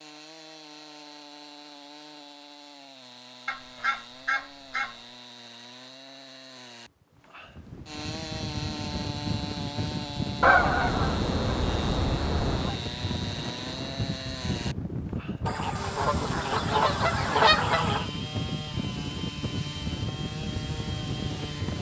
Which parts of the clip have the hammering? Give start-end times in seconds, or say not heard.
not heard.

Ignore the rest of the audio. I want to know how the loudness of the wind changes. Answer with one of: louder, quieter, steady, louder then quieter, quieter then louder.
steady.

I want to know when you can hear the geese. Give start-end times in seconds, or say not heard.
3.5-5.0, 10.4-12.8, 15.4-18.1.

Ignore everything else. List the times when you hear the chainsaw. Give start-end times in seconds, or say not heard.
0.0-21.7.